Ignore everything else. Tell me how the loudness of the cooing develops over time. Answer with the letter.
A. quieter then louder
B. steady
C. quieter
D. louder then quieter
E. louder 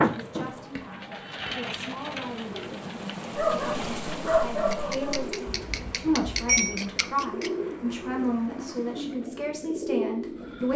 A.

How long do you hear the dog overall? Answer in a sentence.
The dog can be heard for 2 seconds in total.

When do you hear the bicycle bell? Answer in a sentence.
You can hear the bicycle bell from 5.5 to 6.8 s.